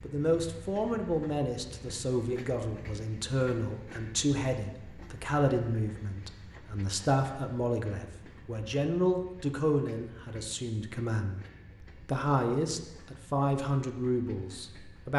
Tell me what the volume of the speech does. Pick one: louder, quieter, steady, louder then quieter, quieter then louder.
steady.